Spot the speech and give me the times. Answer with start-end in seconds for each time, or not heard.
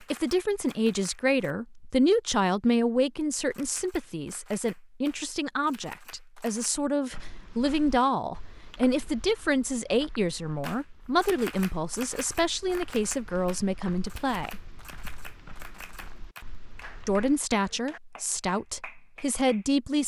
0.1-14.7, 17.1-20.0.